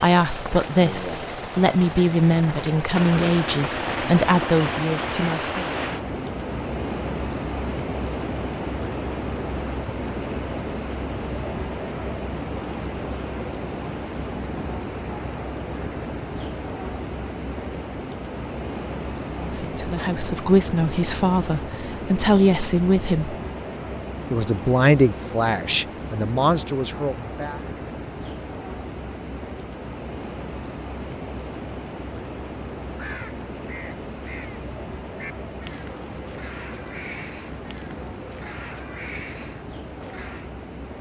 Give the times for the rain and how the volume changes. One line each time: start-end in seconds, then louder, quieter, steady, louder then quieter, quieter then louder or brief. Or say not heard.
0.0-40.9 quieter.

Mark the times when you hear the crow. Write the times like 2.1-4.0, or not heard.
32.9-40.5.